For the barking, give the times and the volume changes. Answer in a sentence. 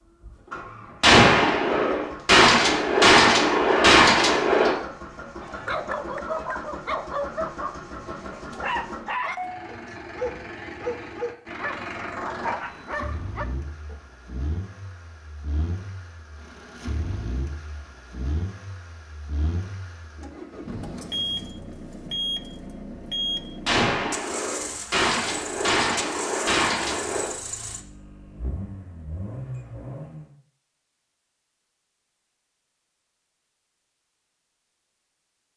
You can hear the barking from 5.4 to 14.0 s, at a steady volume.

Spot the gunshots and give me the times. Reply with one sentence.
The gunshots can be heard from 1.0 to 4.8 s and from 23.6 to 27.4 s.